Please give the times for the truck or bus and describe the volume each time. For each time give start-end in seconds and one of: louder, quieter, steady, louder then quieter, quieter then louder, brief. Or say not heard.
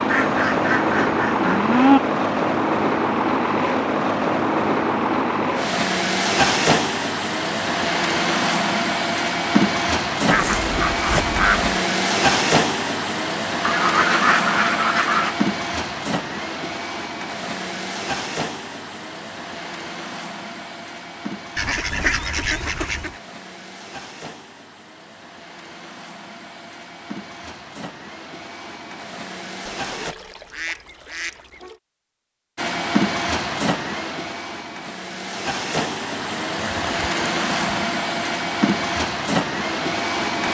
0.0-30.1 quieter
32.5-40.4 quieter then louder.